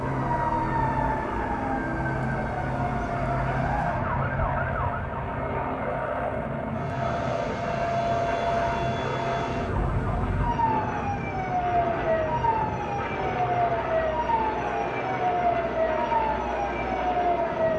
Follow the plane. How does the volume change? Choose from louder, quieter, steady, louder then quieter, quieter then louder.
steady.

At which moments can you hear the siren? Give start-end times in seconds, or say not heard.
0.0-5.3, 6.7-17.7.